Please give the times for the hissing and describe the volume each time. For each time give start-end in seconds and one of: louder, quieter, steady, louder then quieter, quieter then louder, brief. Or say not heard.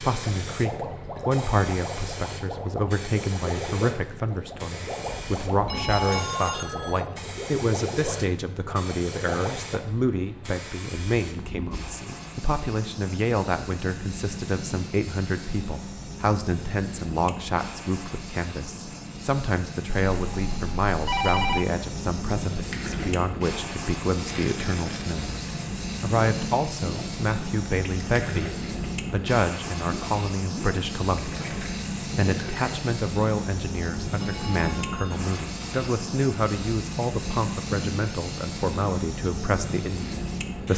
0.0-40.7 louder.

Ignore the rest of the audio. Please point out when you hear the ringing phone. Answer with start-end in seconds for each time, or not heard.
5.7-7.0, 20.1-21.6, 34.1-35.4.